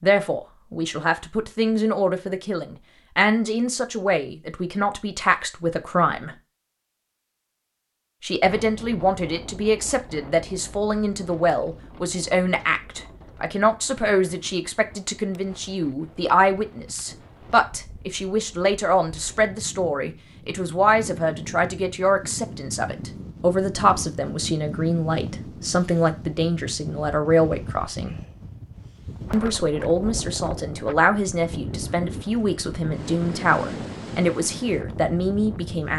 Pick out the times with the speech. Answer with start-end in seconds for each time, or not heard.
0.0-6.3, 8.2-28.1, 29.3-35.9.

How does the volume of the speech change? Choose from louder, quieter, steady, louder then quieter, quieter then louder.
steady.